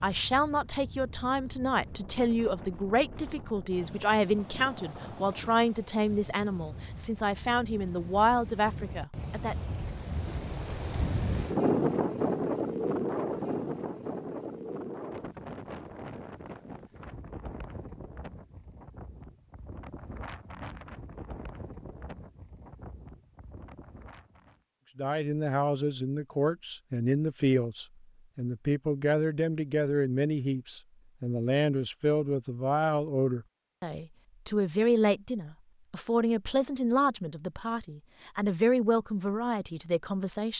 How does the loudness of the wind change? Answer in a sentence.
The volume of the wind goes up, then down.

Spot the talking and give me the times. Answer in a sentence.
The talking can be heard from 0.0 to 9.7 s and from 24.9 to 40.5 s.